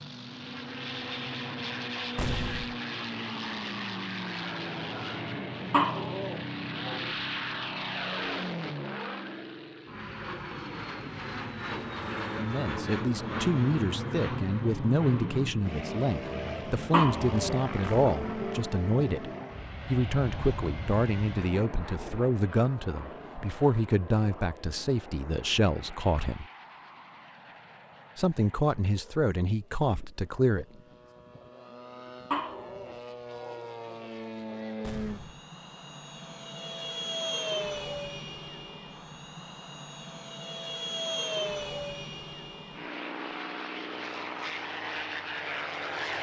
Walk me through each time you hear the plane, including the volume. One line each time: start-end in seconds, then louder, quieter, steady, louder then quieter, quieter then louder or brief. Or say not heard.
0.0-46.1 quieter then louder.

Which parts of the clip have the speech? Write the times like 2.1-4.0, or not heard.
12.3-26.4, 28.1-30.6.